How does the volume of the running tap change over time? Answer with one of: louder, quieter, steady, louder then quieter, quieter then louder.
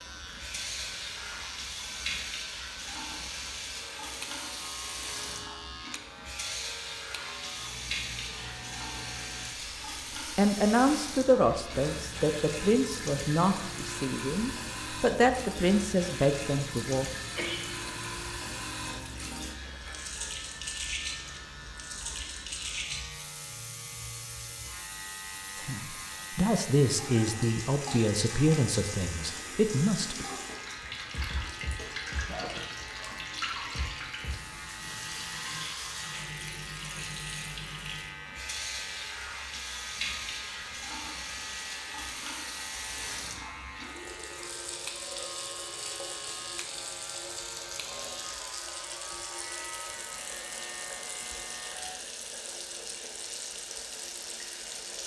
steady.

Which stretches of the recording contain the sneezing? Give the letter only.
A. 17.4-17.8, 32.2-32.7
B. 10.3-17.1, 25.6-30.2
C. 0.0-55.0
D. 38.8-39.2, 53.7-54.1
A.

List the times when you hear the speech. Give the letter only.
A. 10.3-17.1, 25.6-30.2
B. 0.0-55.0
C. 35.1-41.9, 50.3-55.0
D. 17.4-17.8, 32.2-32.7
A.